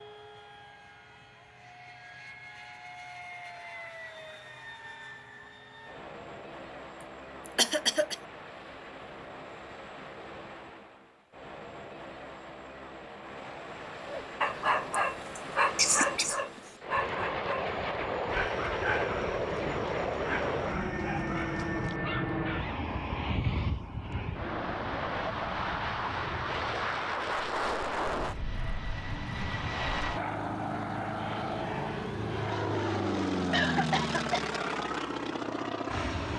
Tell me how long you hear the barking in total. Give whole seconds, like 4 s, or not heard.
9 s.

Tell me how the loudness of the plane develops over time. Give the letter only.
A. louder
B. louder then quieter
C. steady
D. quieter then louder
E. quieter
A.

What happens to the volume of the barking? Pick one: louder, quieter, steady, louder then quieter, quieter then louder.
quieter.